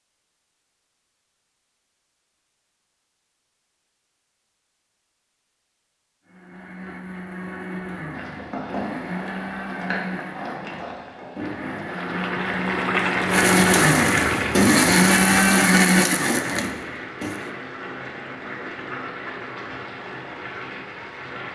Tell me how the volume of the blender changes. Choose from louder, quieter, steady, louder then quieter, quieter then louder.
louder.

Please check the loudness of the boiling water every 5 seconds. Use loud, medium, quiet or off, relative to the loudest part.
off, medium, loud, medium, medium.